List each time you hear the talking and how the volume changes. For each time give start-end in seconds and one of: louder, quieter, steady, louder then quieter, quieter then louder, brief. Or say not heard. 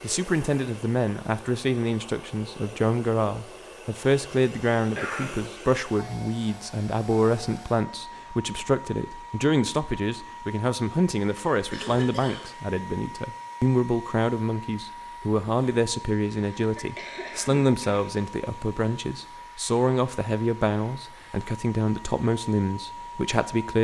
0.0-23.8 steady.